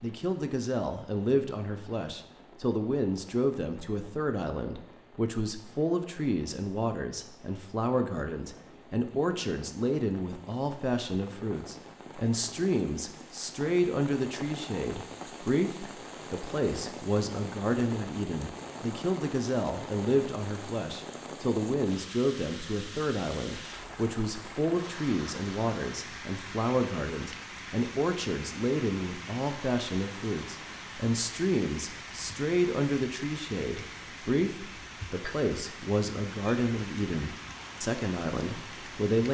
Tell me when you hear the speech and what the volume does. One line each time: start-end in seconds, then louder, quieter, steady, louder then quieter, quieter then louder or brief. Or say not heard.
0.0-39.2 steady.